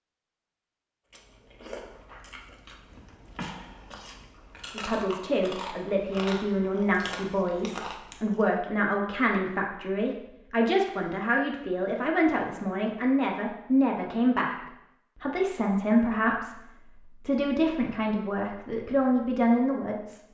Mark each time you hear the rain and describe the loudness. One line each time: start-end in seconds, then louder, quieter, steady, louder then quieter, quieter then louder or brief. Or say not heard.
not heard.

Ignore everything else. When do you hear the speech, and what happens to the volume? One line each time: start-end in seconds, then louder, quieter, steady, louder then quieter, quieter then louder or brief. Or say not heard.
4.7-20.2 steady.